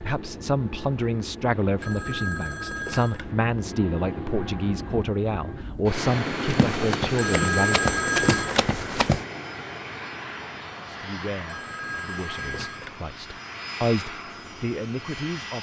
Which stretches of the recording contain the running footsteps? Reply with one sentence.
The running footsteps can be heard from 6.5 to 9.2 s.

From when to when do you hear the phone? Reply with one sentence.
You can hear the phone from 1.8 to 3.4 s, from 7.2 to 8.7 s and from 11.4 to 13.0 s.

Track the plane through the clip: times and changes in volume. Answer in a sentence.
You can hear the plane from 0.0 to 15.5 s, getting louder then quieter.